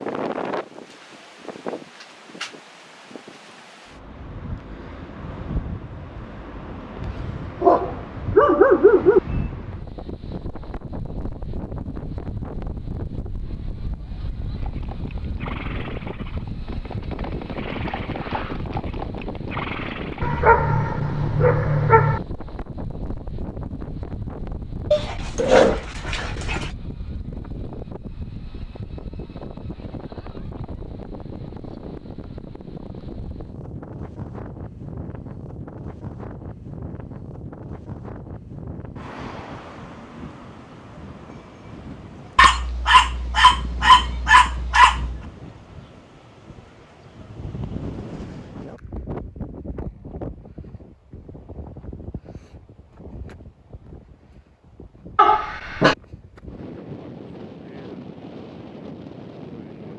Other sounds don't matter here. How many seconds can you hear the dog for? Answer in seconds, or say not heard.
9 s.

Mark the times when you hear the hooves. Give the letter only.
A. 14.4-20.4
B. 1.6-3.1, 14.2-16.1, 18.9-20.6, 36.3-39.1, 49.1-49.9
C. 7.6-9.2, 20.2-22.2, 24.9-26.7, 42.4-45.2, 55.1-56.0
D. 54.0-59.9
A.